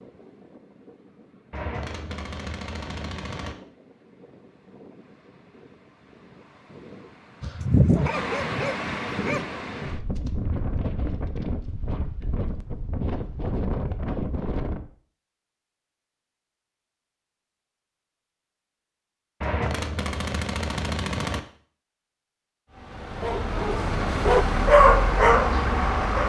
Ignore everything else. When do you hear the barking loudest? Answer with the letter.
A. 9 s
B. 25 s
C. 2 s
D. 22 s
B.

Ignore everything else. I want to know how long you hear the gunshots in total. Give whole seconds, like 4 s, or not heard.
4 s.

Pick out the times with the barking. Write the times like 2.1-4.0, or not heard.
7.4-9.4, 23.2-26.2.